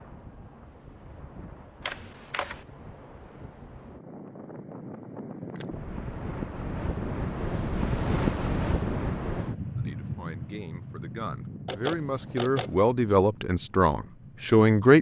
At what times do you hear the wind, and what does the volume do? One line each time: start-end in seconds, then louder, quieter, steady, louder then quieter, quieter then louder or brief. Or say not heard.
0.0-14.9 louder then quieter.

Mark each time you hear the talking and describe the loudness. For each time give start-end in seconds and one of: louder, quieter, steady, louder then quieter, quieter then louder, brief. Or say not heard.
9.8-14.9 louder.